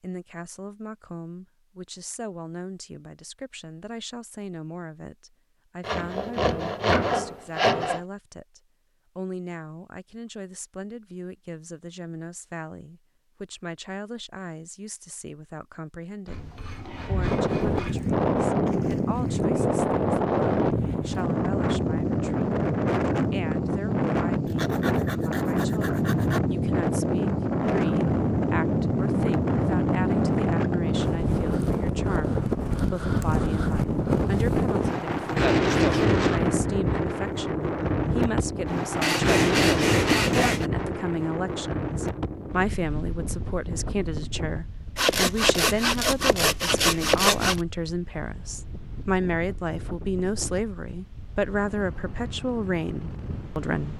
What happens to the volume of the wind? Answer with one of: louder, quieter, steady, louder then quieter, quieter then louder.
quieter.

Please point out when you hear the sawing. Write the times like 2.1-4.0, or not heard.
5.8-8.0, 16.2-18.1, 24.4-26.4, 39.0-40.6, 45.0-47.6.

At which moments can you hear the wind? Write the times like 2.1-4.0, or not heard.
17.1-53.9.